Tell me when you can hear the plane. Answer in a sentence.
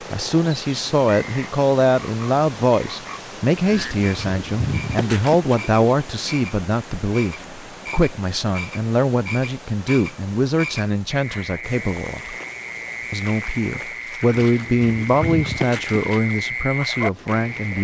You can't hear the plane here.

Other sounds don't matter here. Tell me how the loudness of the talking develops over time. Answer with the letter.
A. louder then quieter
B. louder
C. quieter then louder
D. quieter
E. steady
E.